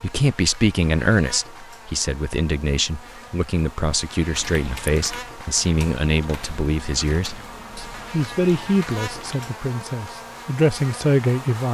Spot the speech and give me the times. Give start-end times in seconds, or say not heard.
0.0-11.6.